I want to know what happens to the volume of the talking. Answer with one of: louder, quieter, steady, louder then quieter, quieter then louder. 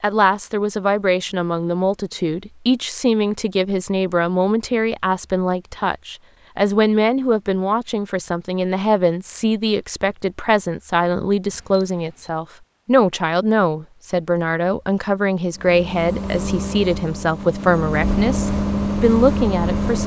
steady.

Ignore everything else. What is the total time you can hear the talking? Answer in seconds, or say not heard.
20 s.